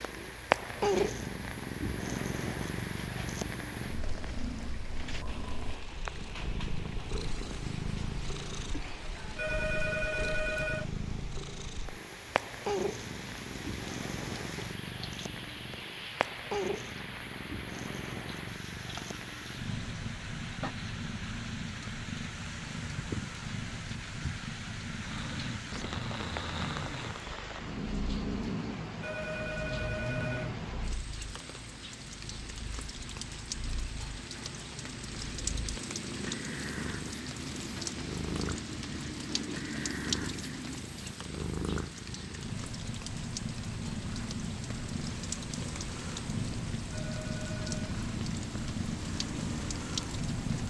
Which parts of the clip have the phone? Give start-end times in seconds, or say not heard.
9.3-10.8, 29.0-30.5, 46.9-47.9.